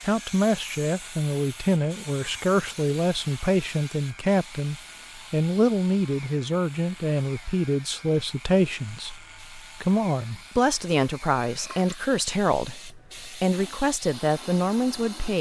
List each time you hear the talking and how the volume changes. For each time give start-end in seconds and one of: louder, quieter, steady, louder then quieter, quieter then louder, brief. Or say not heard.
0.0-15.3 steady.